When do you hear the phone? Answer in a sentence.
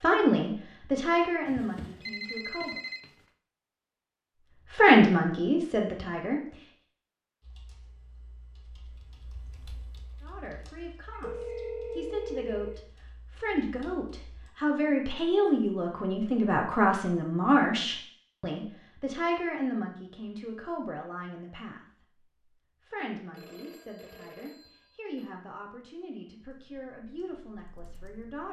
The phone can be heard from 1.4 to 3.1 s, from 11.2 to 12.8 s and from 23.3 to 25.3 s.